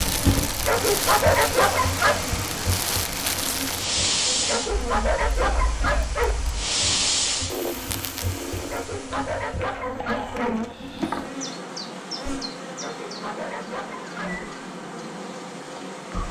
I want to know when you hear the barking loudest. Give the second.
1 s.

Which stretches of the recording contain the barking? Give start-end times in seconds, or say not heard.
0.7-2.2, 4.5-6.3, 8.7-10.6, 12.8-14.5.